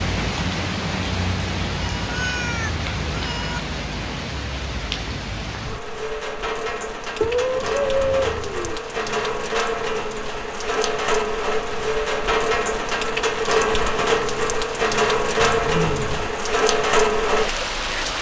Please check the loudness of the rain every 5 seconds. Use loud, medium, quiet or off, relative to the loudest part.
medium, medium, loud, loud.